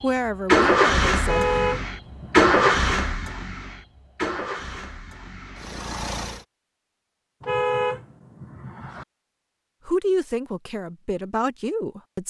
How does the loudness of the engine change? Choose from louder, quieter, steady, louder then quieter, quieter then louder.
quieter.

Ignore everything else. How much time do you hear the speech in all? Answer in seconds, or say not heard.
4 s.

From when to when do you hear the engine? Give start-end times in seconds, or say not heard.
0.0-6.5.